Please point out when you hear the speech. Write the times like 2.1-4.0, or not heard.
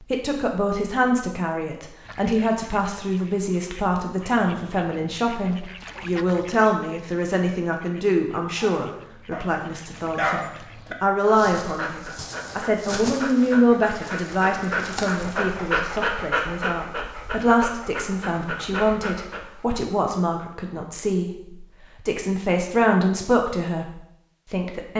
0.1-24.9.